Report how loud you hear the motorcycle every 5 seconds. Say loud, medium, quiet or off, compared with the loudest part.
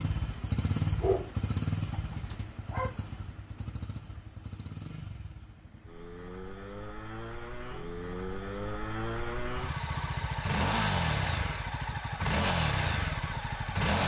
medium, medium, loud.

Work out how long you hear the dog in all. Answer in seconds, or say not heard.
2 s.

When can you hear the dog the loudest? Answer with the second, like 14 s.
1 s.